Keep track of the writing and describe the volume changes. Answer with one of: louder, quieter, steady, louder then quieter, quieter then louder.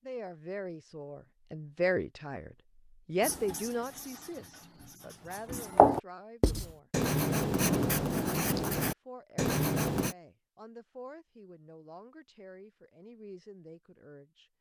louder.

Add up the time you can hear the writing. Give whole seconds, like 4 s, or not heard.
7 s.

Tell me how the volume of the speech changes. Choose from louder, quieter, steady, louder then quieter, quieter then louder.
quieter.